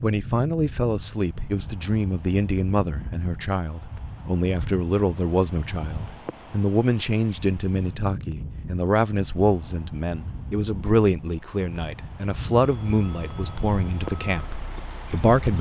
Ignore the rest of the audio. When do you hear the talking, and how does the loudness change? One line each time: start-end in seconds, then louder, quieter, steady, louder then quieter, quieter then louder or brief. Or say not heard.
0.0-15.5 steady.